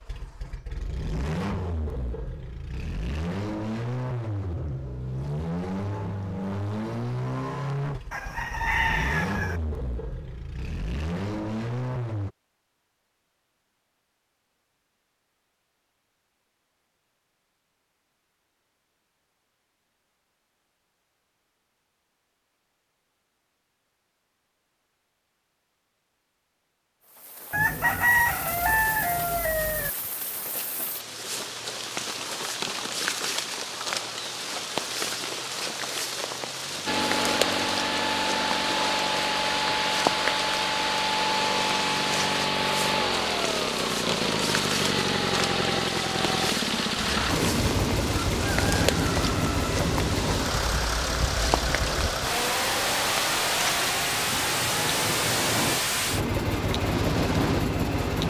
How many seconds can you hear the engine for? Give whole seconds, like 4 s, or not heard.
34 s.